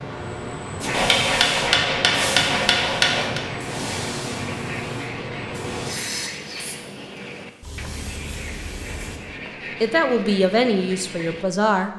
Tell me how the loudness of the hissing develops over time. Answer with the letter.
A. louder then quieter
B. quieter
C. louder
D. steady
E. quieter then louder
B.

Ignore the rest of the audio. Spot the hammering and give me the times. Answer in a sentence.
The hammering can be heard from 0.9 to 3.4 s.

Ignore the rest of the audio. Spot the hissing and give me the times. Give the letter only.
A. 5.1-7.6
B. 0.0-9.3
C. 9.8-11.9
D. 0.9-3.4
B.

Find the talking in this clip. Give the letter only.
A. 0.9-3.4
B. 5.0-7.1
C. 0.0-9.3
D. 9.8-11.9
D.